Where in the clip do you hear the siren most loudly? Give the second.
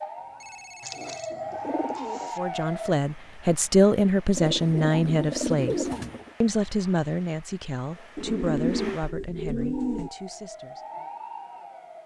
2 s.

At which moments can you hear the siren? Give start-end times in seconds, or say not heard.
0.0-3.0, 9.7-12.0.